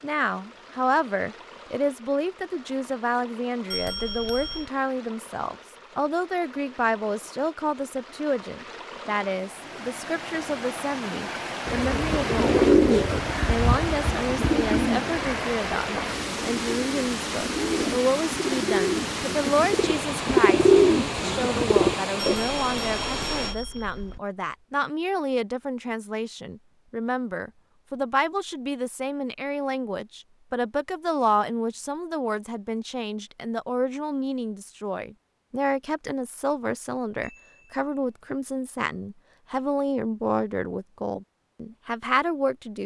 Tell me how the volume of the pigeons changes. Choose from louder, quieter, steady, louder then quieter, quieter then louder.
quieter then louder.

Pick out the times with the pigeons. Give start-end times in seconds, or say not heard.
11.7-22.4.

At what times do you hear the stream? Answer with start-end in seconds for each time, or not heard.
0.0-23.6.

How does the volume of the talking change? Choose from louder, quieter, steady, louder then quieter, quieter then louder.
steady.